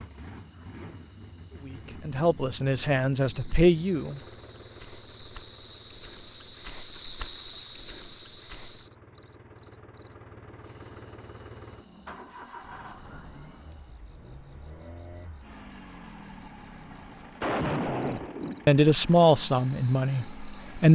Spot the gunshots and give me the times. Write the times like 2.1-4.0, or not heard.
17.4-19.3.